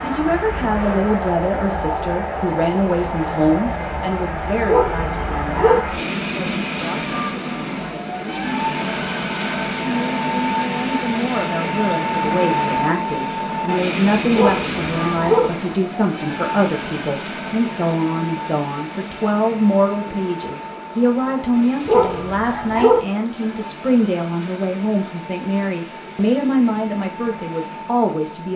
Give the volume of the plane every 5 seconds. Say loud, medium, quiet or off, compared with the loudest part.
loud, loud, loud, medium, quiet, quiet.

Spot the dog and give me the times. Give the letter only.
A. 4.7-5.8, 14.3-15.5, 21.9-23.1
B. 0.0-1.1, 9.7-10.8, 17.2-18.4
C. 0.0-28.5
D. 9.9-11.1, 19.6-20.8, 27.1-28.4
A.